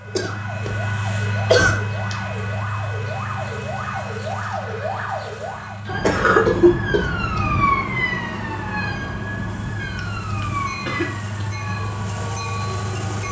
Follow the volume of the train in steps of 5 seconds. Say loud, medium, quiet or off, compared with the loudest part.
loud, medium, loud.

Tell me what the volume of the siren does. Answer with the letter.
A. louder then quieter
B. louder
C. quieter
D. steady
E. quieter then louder
A.